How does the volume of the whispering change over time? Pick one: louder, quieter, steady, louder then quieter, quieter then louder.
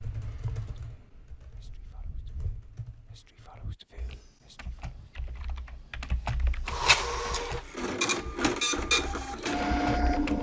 louder then quieter.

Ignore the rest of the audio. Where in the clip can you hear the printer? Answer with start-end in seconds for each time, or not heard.
6.7-10.3.